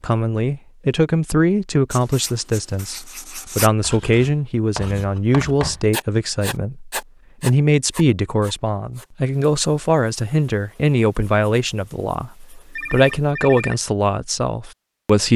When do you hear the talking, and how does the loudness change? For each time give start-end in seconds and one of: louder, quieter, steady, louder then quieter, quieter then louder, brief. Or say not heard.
0.0-15.3 steady.